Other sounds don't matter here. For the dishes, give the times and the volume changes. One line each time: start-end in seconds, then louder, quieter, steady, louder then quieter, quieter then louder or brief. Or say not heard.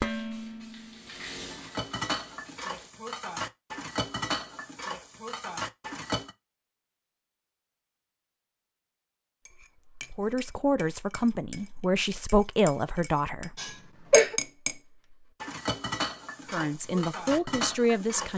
0.0-6.3 louder
9.4-18.3 louder.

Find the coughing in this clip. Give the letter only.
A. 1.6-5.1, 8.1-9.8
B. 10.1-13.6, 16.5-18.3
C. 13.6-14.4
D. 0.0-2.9
C.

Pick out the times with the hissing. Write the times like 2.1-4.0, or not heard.
0.0-2.9.